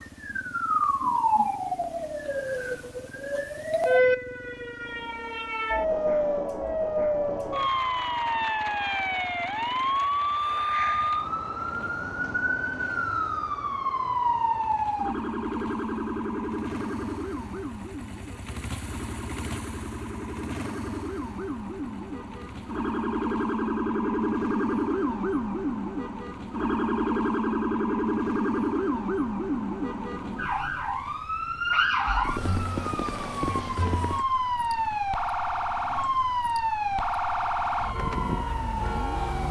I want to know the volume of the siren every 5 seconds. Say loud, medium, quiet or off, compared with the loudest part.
loud, loud, loud, medium, loud, loud, loud, loud.